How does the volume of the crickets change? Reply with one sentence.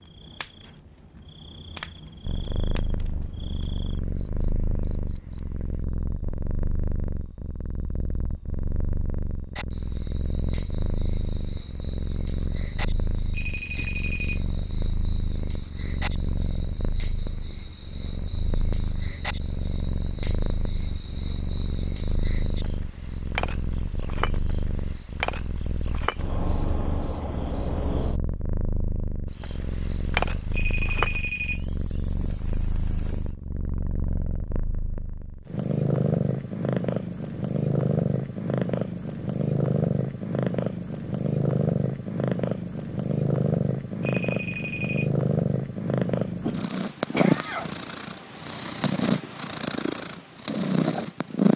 The volume of the crickets goes up.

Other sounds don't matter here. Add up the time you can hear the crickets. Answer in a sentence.
The crickets can be heard for 33 seconds in total.